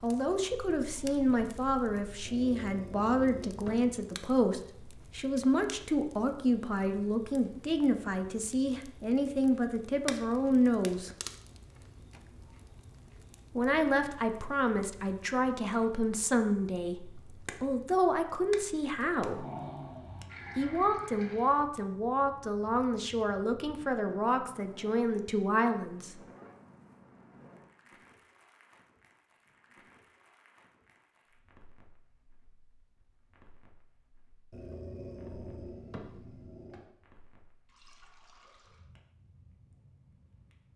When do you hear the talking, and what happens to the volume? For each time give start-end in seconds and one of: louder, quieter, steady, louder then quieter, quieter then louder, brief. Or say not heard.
0.0-11.2 steady
13.6-19.4 steady
20.6-26.1 steady.